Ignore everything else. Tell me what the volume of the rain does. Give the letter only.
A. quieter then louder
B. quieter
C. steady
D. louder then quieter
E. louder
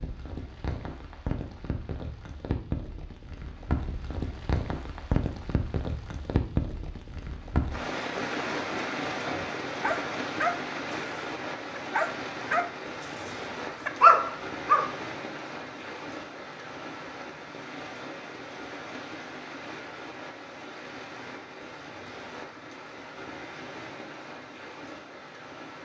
B.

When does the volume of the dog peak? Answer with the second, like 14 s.
14 s.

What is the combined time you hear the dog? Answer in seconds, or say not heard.
4 s.